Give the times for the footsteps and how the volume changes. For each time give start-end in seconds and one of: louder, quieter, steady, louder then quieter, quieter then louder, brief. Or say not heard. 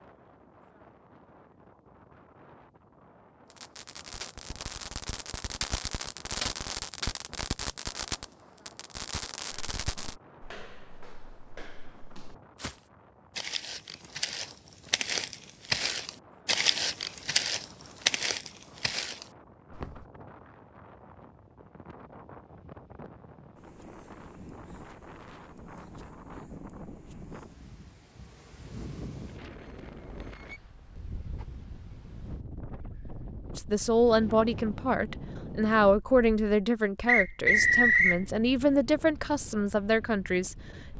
9.5-20.1 louder.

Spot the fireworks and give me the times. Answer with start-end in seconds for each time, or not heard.
3.5-10.2.